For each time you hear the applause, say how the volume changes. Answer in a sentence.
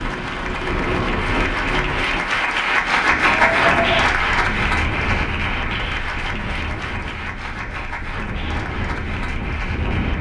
You can hear the applause from 0.0 to 10.1 s, getting louder then quieter.